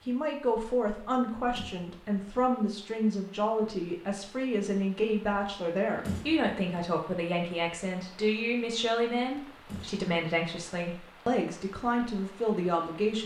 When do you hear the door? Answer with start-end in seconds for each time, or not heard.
1.6-2.3, 6.0-6.8, 9.7-10.1.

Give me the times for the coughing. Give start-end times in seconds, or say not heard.
not heard.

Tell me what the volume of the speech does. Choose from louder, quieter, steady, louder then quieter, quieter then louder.
steady.